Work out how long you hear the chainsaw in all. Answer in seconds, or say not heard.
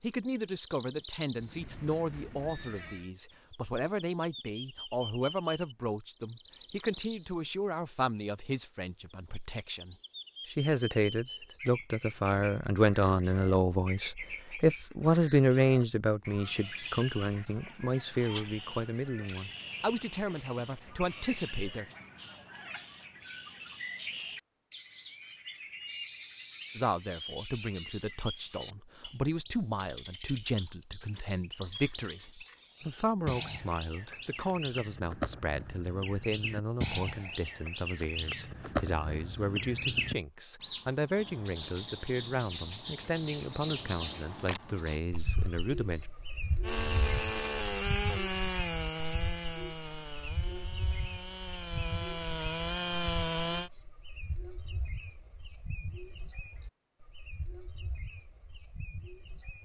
7 s.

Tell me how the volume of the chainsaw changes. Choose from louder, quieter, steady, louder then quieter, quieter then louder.
quieter then louder.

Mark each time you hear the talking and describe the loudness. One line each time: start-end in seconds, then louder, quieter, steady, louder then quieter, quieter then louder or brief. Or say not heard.
0.0-21.9 louder then quieter
26.8-46.0 steady.